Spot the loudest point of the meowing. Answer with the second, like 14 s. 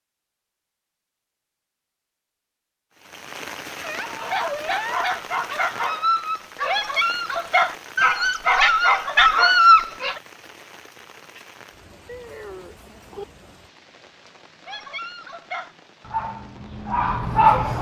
5 s.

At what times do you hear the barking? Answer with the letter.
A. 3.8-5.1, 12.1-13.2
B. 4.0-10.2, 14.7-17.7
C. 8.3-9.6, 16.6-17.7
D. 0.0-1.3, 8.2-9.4
B.